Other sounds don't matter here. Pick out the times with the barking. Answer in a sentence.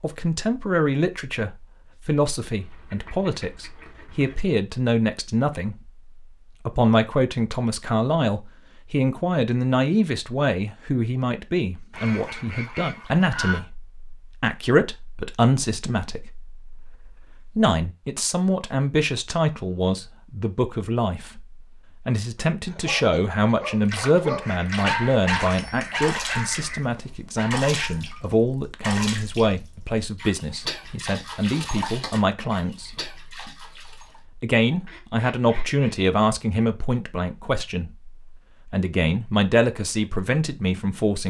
The barking can be heard from 22.6 to 28.1 s.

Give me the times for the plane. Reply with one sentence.
The plane can't be heard in this clip.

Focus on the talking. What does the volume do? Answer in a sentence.
The volume of the talking stays about the same.